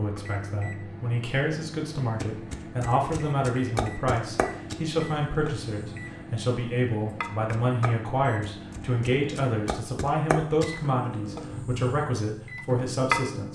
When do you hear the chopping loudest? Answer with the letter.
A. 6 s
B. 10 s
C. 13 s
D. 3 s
C.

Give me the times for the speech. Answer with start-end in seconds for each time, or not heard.
0.0-13.4.